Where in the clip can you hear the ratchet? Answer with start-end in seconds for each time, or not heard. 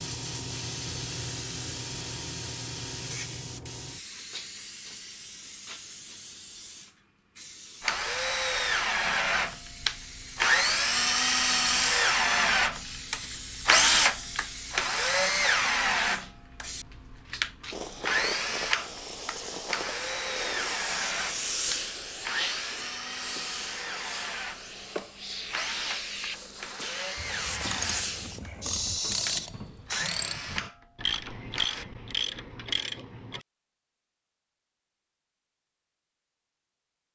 27.1-33.5.